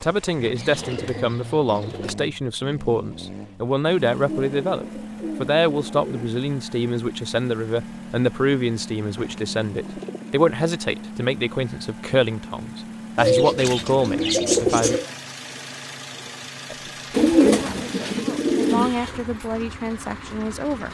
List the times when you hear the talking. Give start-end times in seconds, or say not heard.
0.0-15.0, 16.7-20.9.